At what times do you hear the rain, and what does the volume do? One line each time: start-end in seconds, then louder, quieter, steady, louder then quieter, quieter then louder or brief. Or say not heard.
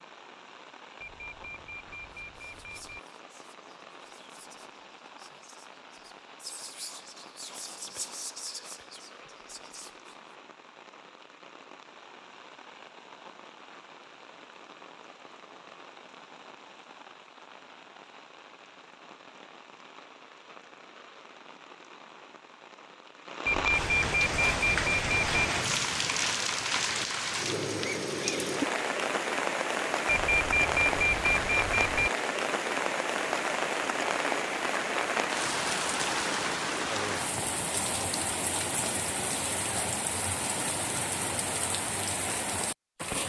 0.0-43.2 louder.